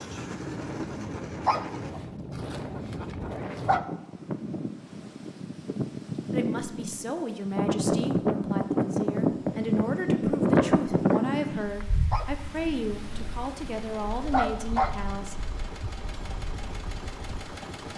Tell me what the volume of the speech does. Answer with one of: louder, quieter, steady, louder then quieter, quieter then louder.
steady.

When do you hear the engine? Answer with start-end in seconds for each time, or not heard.
0.0-1.9, 12.4-17.9.